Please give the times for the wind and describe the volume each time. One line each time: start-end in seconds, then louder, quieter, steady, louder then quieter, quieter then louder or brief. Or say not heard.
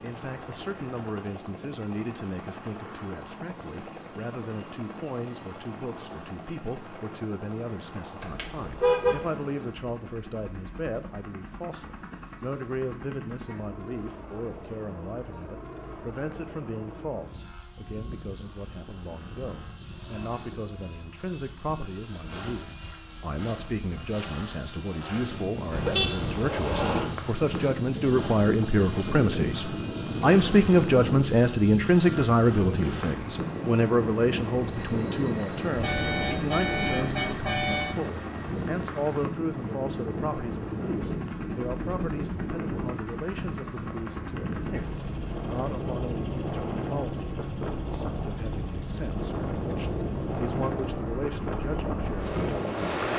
25.2-53.1 steady.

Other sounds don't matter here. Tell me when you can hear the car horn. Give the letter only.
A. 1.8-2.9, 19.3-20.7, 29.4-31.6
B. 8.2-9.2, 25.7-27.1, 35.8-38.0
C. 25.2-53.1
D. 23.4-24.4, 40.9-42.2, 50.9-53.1
B.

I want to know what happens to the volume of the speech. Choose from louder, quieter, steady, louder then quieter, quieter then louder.
louder then quieter.